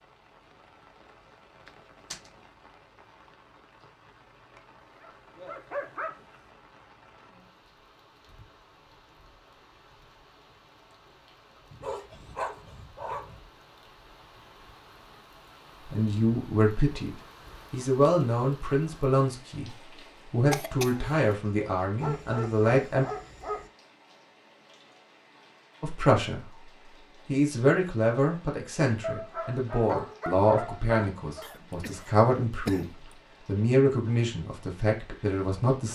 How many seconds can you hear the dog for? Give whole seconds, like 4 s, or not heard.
8 s.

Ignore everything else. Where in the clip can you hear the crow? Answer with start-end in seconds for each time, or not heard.
not heard.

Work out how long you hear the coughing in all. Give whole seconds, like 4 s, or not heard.
3 s.